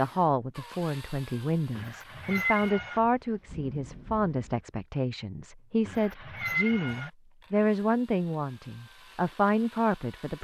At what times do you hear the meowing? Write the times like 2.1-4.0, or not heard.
1.8-3.0, 5.8-7.1.